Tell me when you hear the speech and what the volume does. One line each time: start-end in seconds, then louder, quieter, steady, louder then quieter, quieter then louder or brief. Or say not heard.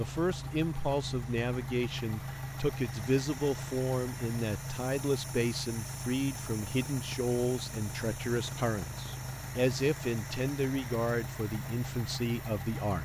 0.0-13.0 steady.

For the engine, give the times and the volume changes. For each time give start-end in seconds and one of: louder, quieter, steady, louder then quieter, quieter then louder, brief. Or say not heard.
0.0-13.0 steady.